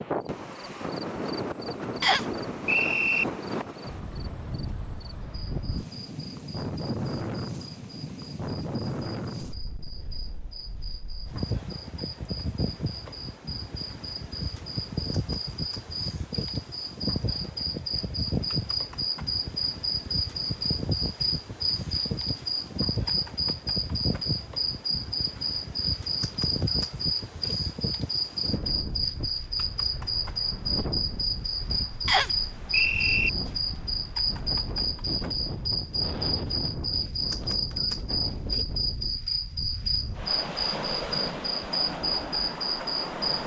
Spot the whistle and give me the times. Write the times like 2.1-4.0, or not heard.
2.0-3.2, 32.0-33.3.